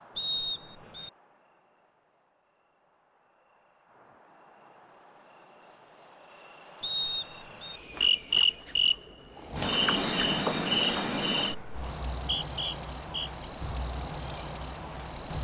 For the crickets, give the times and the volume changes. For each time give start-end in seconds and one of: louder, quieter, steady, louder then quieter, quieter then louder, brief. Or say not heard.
0.0-15.3 louder.